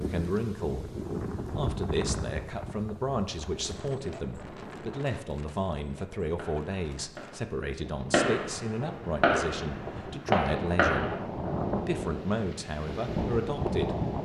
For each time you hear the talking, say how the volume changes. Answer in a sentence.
You can hear the talking from 0.0 to 11.2 s, at a steady volume; and briefly from 11.8 to 13.9 s.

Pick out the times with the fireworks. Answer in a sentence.
The fireworks can be heard from 6.2 to 11.2 s.